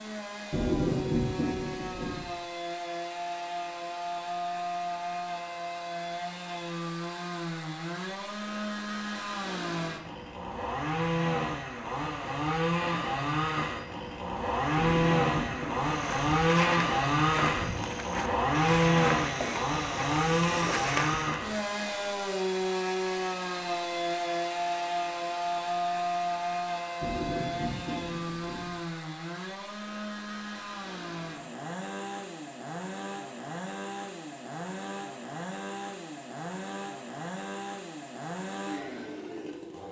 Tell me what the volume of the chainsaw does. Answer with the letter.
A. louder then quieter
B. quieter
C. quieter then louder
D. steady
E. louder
A.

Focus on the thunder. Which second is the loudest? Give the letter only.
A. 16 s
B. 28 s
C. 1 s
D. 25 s
C.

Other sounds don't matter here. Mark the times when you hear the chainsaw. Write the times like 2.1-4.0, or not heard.
0.0-39.8.